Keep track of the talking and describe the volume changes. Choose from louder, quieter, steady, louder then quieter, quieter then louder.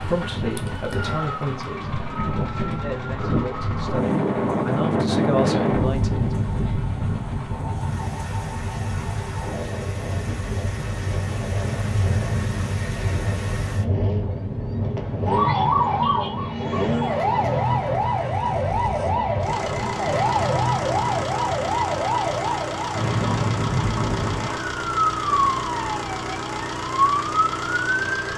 quieter then louder.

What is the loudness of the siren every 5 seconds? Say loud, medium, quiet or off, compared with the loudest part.
quiet, quiet, medium, loud, loud, loud.